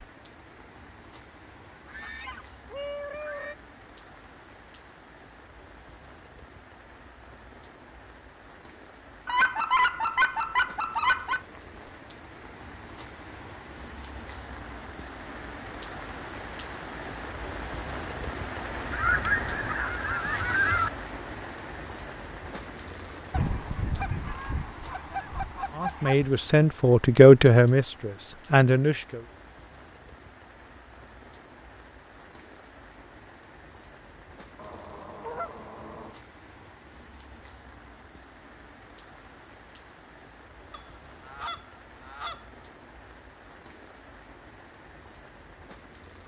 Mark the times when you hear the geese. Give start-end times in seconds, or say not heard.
1.7-3.5, 9.2-11.4, 18.9-20.9, 23.3-26.3, 34.5-36.1, 40.7-42.5.